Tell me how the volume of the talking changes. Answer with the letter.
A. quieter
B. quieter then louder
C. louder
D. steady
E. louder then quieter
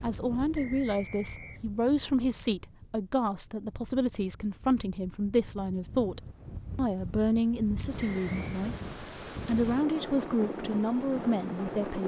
D.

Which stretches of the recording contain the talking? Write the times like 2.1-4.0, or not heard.
0.0-12.0.